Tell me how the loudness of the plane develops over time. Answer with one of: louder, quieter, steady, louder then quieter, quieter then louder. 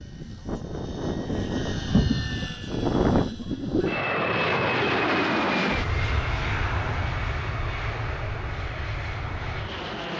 louder then quieter.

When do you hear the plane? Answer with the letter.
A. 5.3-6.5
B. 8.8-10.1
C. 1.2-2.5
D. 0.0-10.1
D.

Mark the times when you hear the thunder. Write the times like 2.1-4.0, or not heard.
1.2-2.5.